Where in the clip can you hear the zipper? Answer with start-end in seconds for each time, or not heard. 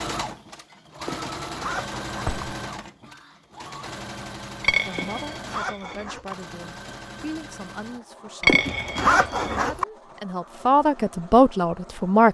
1.1-2.4, 5.0-6.3, 8.4-9.8.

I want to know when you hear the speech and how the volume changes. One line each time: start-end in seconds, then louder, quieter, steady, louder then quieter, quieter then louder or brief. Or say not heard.
4.8-12.3 louder.